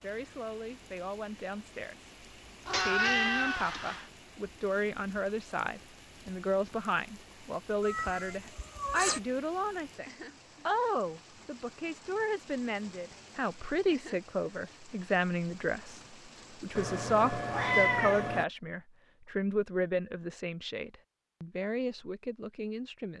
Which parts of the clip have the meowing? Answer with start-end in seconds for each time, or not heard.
2.6-4.0, 7.8-9.2, 16.8-18.4.